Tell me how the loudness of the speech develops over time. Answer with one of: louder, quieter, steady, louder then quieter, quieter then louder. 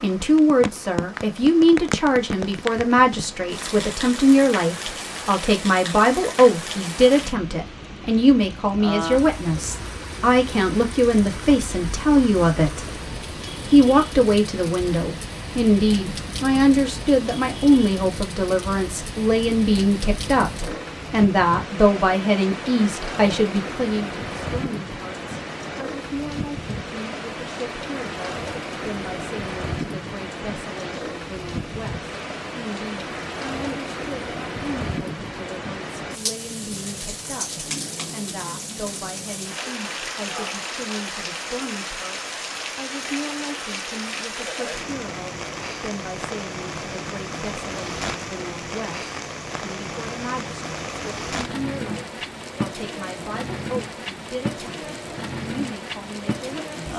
quieter.